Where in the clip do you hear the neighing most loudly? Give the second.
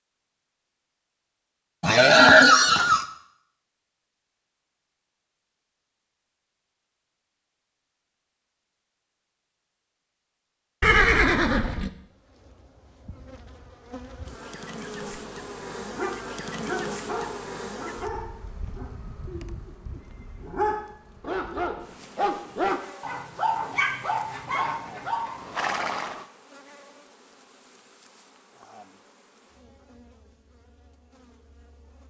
2 s.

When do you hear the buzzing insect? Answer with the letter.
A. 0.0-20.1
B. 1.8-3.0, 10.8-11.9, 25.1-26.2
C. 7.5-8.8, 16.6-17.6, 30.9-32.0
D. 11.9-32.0
D.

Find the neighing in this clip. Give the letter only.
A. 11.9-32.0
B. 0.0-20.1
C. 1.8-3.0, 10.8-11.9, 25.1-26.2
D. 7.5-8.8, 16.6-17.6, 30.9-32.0
C.